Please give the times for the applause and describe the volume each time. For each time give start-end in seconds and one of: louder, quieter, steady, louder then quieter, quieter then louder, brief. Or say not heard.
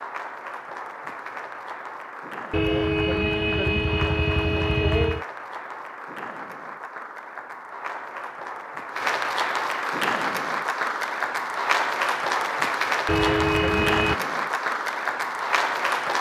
0.0-16.1 louder.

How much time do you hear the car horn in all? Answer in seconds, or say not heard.
4 s.